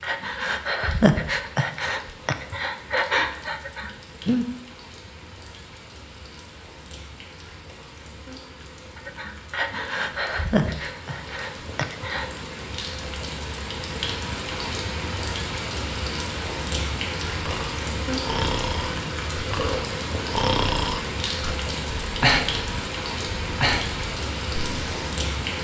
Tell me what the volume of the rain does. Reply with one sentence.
The loudness of the rain goes up.